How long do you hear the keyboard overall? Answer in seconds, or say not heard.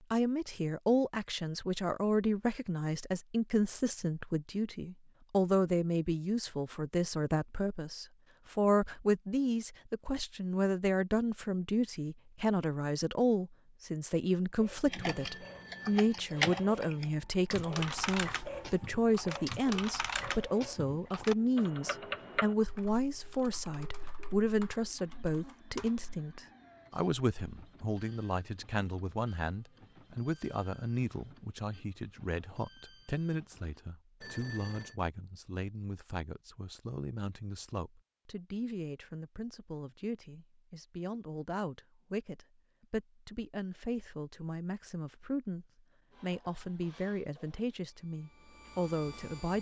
11 s.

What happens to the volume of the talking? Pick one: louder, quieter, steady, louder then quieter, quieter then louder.
quieter.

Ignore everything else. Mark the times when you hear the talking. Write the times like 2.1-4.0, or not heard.
0.1-49.5.